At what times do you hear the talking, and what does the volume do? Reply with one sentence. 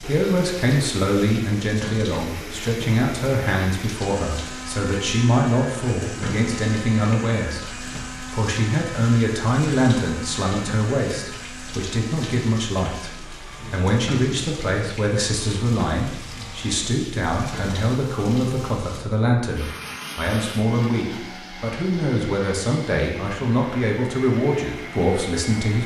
The talking can be heard from 0.0 to 25.8 s, at a steady volume.